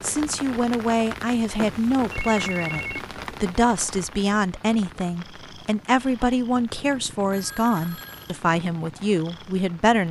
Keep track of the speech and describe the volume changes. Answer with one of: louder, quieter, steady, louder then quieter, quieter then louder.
steady.